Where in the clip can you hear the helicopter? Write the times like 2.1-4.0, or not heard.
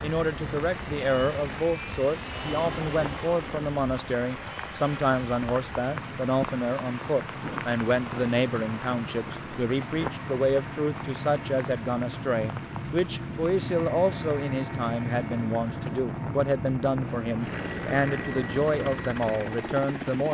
0.0-20.3.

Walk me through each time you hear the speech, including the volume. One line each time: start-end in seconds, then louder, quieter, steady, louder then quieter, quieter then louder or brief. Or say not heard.
0.0-20.3 steady.